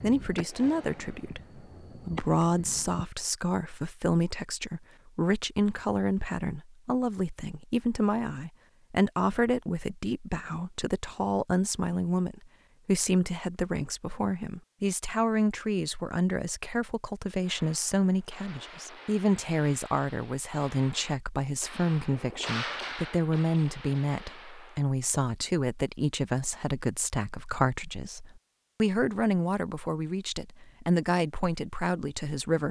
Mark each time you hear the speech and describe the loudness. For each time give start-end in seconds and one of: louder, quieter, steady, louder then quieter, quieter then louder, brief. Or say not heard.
0.0-32.6 steady.